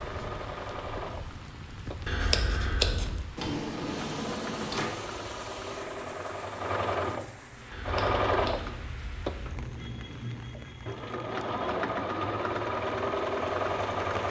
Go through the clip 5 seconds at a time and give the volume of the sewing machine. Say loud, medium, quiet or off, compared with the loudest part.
medium, loud, loud.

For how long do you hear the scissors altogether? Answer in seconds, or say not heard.
3 s.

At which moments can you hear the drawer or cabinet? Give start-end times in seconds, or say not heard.
3.4-4.9.